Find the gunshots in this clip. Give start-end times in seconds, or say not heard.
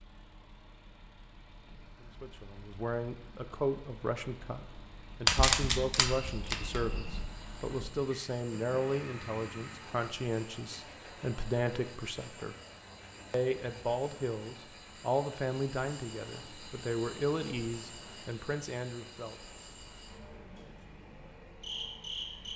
5.2-7.2.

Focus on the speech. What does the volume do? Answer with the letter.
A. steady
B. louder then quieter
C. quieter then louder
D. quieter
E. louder
A.